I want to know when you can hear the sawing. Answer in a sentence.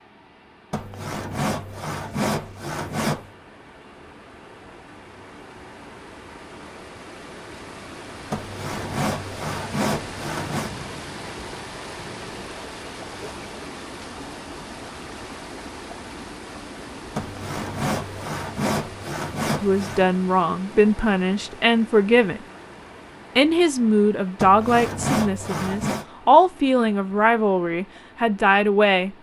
You can hear the sawing from 0.7 to 3.3 s, from 8.3 to 10.7 s, from 17.1 to 20.1 s and from 24.4 to 26.1 s.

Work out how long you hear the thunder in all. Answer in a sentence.
The thunder can be heard for 2 seconds in total.